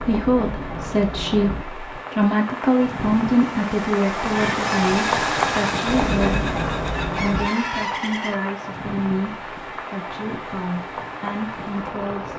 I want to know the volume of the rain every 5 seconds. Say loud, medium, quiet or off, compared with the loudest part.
loud, loud, medium.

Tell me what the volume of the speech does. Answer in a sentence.
The loudness of the speech goes down.